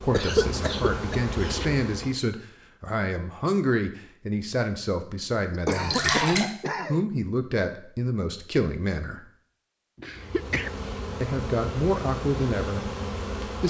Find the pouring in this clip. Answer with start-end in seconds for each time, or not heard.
5.7-6.5.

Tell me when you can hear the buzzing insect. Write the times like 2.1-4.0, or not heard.
0.0-2.2, 10.1-13.6.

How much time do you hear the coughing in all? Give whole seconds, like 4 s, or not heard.
4 s.